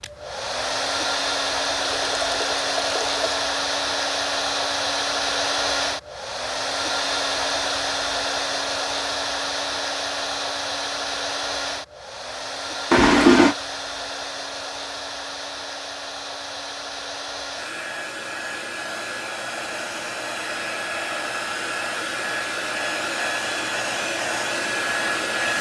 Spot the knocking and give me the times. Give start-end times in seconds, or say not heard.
not heard.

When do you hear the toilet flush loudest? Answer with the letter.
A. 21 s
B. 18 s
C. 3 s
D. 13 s
D.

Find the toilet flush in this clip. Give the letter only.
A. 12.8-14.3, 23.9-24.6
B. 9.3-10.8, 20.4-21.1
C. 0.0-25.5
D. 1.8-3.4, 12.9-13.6
D.